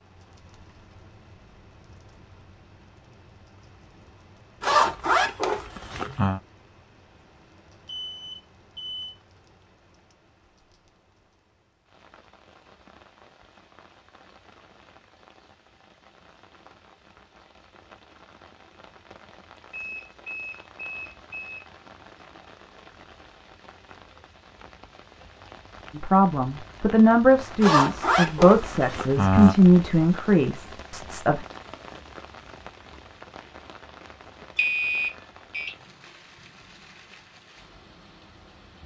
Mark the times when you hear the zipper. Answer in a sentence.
You can hear the zipper from 4.6 to 6.4 s and from 27.6 to 29.6 s.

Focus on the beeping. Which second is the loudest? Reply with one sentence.
The volume of the beeping peaks at 35 seconds.